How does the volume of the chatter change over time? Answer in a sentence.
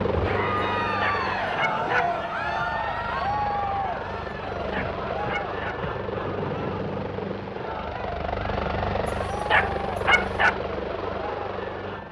The volume of the chatter goes down.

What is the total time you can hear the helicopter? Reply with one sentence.
You can hear the helicopter for 12 seconds altogether.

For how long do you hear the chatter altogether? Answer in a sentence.
You can hear the chatter for 12 seconds altogether.